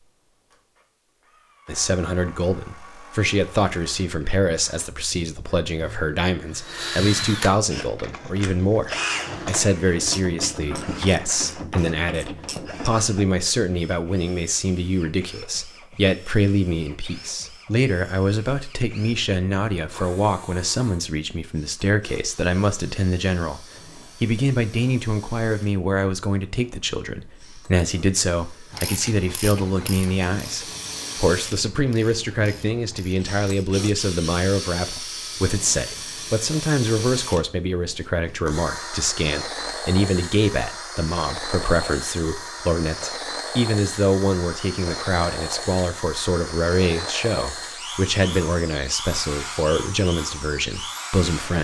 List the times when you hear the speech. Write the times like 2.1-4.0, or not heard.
1.6-51.6.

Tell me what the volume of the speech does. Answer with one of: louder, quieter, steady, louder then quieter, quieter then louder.
steady.